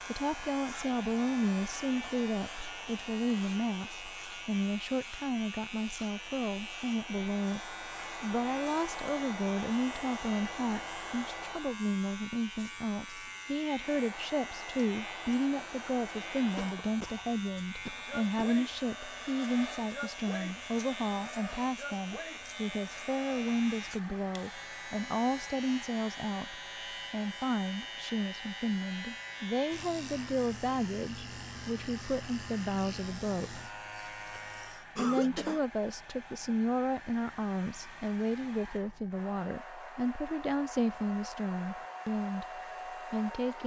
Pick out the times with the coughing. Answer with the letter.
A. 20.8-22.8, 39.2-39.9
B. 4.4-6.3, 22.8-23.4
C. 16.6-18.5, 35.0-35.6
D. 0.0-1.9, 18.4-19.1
C.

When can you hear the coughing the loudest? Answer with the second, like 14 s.
35 s.